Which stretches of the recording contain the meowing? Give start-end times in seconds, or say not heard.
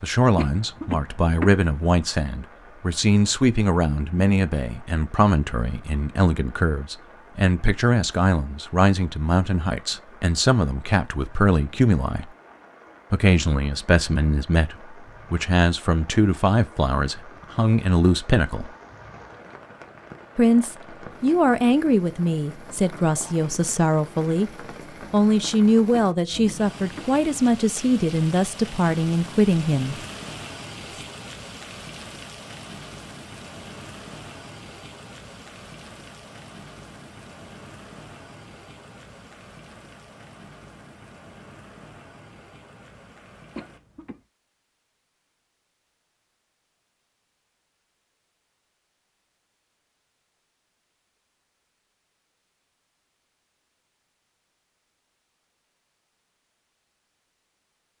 not heard.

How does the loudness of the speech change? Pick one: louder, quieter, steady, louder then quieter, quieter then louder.
steady.